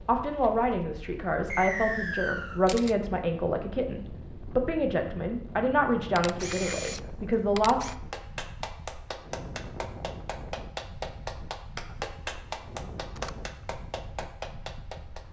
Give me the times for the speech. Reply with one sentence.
You can hear the speech from 0.1 to 7.8 s.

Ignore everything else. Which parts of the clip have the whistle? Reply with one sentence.
You can hear the whistle from 1.5 to 2.6 s.